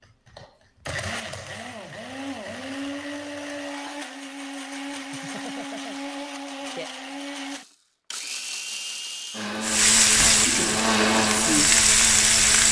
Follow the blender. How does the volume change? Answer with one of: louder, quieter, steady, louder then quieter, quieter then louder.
louder.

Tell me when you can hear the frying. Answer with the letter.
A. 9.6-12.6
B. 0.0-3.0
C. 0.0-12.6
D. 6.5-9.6
A.